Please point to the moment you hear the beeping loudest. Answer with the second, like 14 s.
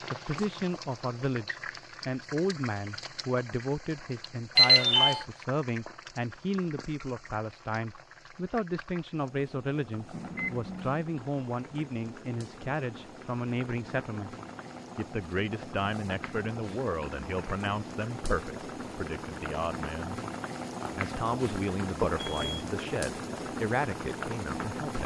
5 s.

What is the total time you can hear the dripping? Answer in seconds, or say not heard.
not heard.